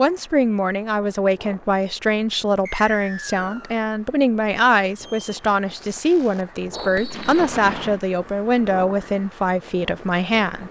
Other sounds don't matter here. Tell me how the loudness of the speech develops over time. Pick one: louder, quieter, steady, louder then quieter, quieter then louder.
steady.